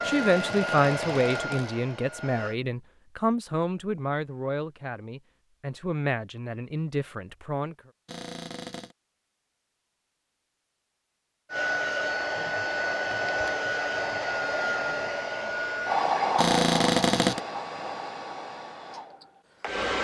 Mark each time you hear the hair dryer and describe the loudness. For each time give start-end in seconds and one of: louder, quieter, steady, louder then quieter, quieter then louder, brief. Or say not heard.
0.0-2.5 brief
11.5-20.0 quieter.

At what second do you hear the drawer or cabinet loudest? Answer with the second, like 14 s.
17 s.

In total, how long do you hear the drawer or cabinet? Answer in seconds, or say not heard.
4 s.